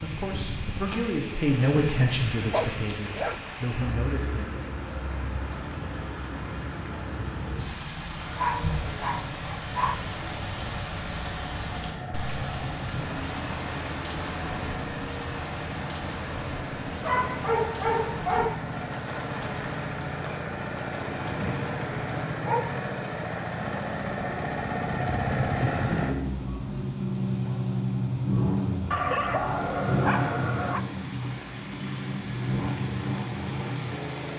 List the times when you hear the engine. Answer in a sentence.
The engine can be heard from 8.1 to 34.3 s.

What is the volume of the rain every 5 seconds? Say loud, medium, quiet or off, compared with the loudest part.
loud, loud, loud, loud, medium, medium, medium.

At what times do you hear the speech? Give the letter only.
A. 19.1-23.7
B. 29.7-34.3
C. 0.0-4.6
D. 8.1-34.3
C.